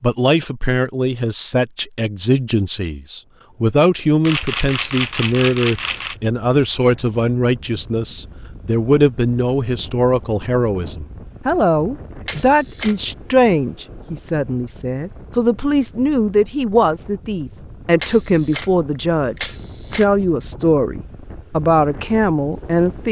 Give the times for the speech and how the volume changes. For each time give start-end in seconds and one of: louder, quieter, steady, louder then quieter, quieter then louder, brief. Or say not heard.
0.0-23.0 steady.